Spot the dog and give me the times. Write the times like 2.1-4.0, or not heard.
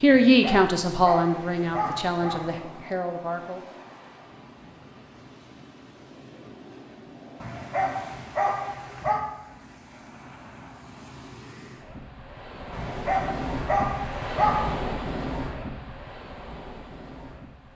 0.1-2.5, 7.4-9.2, 12.7-14.9.